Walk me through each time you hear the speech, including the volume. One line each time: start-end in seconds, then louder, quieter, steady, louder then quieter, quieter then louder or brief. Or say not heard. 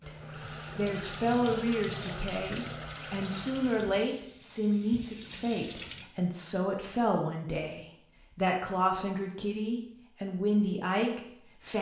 0.1-11.7 steady.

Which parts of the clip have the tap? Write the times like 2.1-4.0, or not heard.
0.0-6.2.